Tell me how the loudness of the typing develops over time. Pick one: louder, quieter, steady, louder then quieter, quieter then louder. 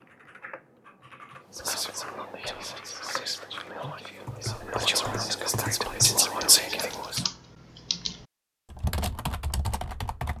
louder.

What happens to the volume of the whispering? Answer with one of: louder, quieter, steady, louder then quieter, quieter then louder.
louder.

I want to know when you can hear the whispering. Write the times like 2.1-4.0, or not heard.
1.5-7.2.